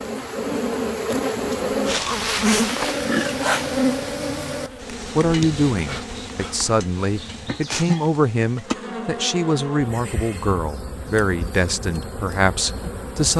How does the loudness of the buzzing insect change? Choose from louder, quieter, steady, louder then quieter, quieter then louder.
quieter.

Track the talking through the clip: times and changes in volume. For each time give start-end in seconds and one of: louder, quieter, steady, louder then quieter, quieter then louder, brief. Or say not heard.
5.2-13.3 steady.